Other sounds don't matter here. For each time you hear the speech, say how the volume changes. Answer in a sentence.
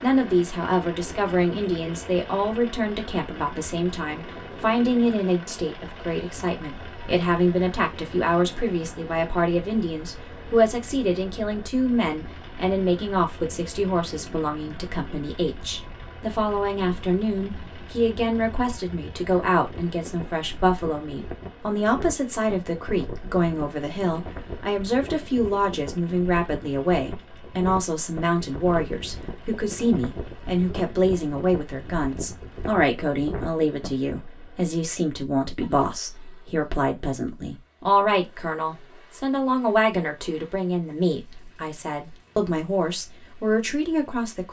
The speech can be heard from 0.0 to 44.4 s, at a steady volume.